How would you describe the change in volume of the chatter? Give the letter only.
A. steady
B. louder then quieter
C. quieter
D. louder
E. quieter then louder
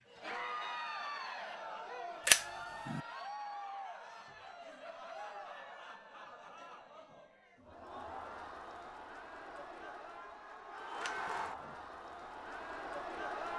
E.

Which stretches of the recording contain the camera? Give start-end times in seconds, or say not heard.
2.2-3.0, 11.0-11.8.